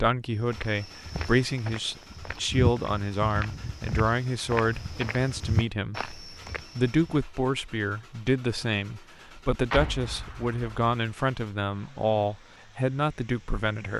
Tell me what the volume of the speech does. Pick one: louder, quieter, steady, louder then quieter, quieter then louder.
steady.